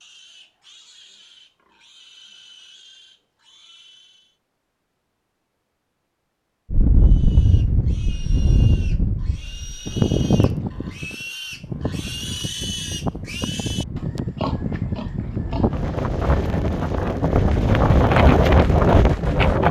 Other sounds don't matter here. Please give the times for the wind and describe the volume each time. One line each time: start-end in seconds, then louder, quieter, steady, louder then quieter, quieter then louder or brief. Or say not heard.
6.7-19.6 quieter then louder.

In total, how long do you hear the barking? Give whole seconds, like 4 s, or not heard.
not heard.